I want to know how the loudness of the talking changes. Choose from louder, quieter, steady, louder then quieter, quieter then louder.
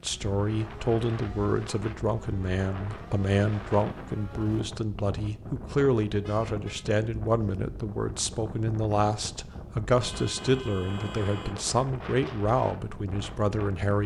steady.